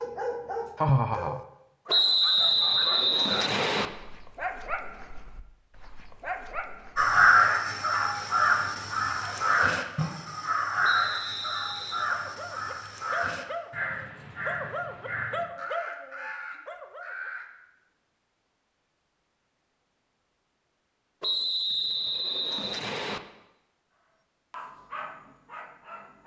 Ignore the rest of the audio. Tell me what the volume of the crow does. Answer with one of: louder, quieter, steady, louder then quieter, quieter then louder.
quieter.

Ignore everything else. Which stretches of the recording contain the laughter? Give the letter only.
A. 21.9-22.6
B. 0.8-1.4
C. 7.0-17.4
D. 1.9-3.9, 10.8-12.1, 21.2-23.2
B.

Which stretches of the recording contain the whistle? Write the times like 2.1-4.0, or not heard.
1.9-3.9, 10.8-12.1, 21.2-23.2.